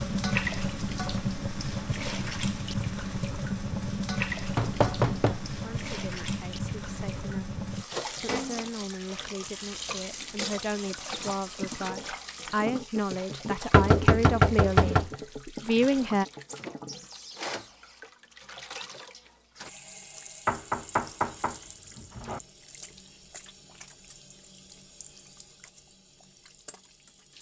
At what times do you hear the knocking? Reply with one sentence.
You can hear the knocking from 4.5 to 5.5 s, from 13.7 to 15.2 s and from 20.4 to 22.4 s.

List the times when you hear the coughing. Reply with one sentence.
You can't hear the coughing here.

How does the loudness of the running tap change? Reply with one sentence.
The loudness of the running tap goes down.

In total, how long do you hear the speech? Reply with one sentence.
You can hear the speech for 11 seconds altogether.